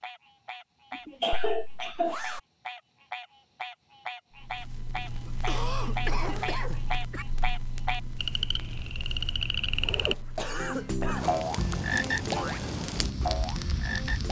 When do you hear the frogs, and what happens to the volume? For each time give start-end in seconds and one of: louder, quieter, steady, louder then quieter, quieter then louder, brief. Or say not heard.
0.0-14.2 louder.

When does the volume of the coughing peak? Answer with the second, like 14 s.
1 s.